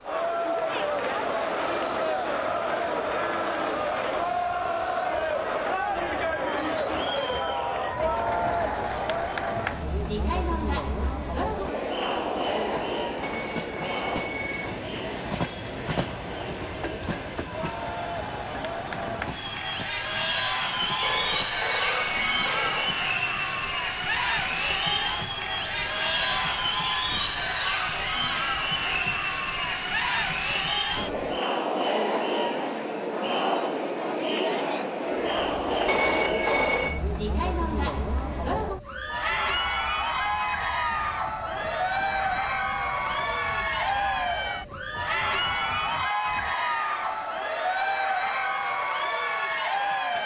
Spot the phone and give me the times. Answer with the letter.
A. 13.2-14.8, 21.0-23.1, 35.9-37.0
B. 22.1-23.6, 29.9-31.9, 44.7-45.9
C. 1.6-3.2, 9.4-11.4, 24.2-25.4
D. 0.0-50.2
A.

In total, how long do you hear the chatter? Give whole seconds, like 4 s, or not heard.
50 s.